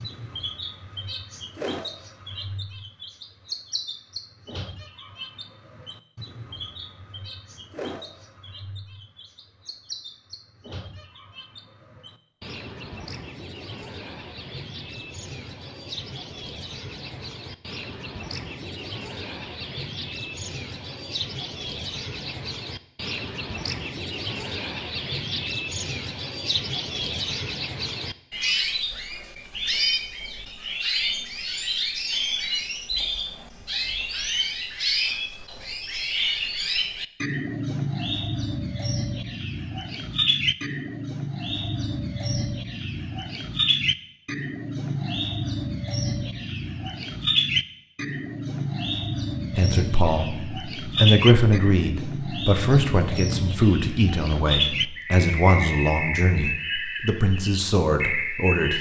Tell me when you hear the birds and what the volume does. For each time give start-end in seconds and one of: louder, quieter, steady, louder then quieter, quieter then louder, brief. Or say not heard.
0.0-58.7 louder.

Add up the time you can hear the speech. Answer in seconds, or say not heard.
9 s.